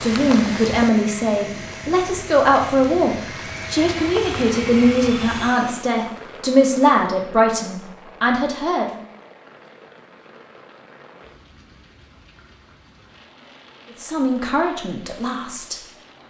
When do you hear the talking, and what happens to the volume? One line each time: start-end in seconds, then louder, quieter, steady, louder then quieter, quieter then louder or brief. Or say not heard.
0.0-9.1 steady
14.0-15.8 brief.